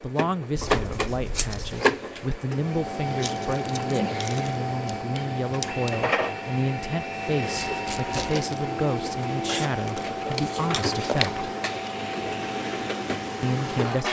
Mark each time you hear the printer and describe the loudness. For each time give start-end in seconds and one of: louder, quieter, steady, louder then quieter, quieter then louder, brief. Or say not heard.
0.0-14.0 steady.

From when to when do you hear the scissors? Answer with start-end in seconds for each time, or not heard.
0.6-1.9, 4.8-5.9, 9.4-11.3.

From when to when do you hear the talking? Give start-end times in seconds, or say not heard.
0.0-11.5, 13.4-14.0.